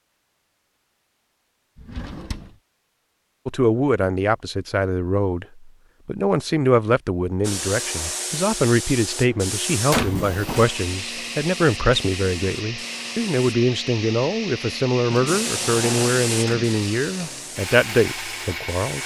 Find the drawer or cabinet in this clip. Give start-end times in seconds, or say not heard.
1.8-2.5, 9.9-10.7, 15.1-16.7.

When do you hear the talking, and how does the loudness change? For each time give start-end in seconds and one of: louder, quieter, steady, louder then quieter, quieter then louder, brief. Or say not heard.
3.5-19.0 steady.